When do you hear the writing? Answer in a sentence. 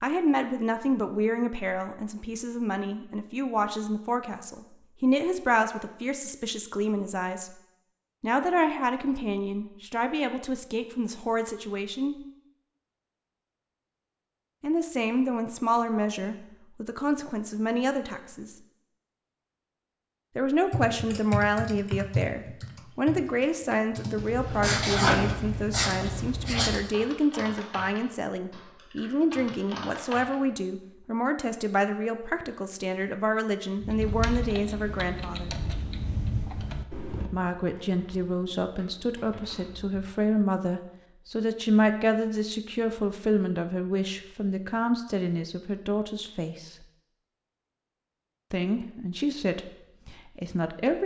You can hear the writing from 24.1 to 26.8 s.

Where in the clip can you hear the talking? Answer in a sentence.
The talking can be heard from 0.0 to 7.5 s, from 8.2 to 12.2 s, from 14.6 to 18.6 s, from 20.4 to 35.5 s, from 37.3 to 46.8 s and from 48.5 to 51.0 s.